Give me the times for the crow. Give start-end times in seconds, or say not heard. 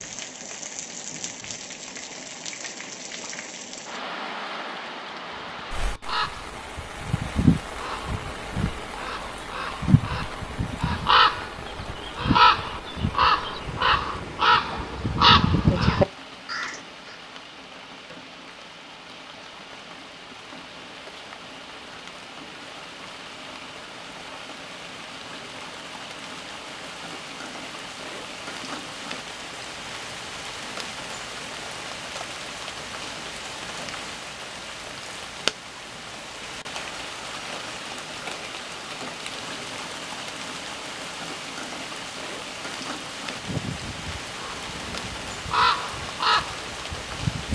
6.0-16.8, 43.4-47.5.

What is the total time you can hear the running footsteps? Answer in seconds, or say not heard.
not heard.